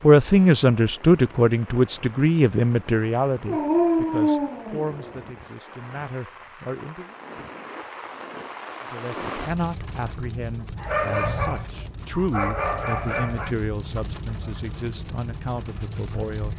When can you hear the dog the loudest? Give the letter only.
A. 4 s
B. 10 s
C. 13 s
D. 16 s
A.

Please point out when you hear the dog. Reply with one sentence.
The dog can be heard from 3.5 to 5.3 s and from 10.8 to 13.5 s.